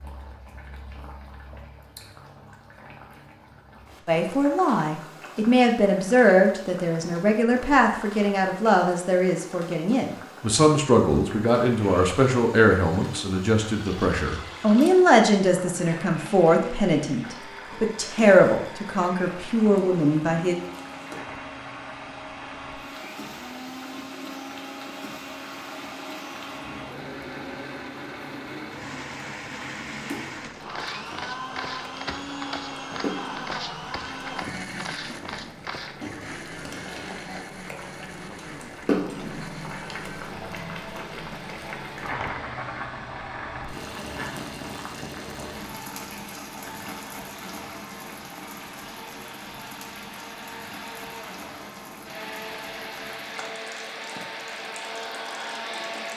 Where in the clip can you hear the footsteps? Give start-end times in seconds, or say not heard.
30.6-36.0.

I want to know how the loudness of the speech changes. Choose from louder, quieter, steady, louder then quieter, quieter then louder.
steady.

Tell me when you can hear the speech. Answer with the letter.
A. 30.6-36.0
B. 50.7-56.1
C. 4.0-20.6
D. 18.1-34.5
C.